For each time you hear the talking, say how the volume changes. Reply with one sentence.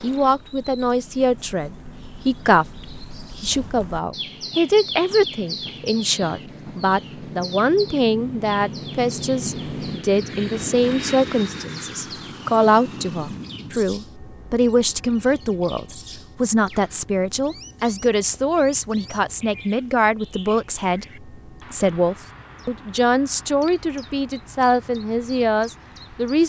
The talking can be heard from 0.0 to 26.4 s, at a steady volume.